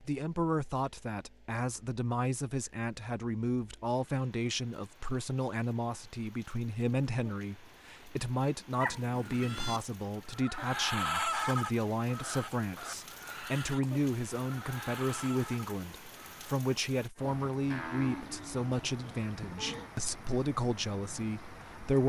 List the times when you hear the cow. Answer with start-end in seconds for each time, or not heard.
17.7-19.9.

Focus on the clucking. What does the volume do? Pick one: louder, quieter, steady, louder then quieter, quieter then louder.
louder then quieter.